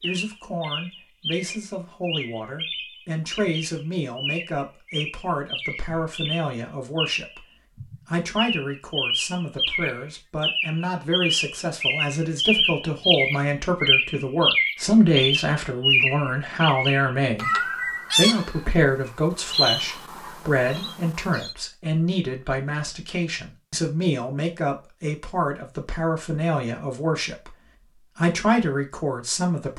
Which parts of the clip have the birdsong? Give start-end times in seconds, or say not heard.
0.0-21.6.